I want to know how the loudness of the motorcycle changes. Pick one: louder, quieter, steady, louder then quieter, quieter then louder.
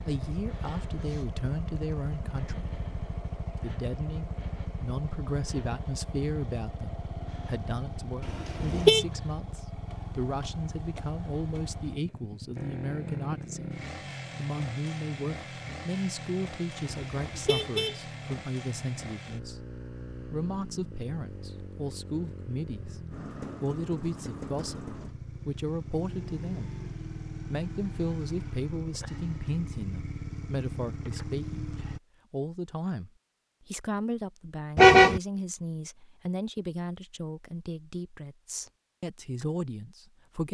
steady.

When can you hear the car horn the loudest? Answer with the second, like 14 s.
35 s.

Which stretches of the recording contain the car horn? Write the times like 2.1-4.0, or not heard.
8.2-9.1, 16.9-17.9, 34.8-35.2.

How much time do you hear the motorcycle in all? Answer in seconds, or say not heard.
32 s.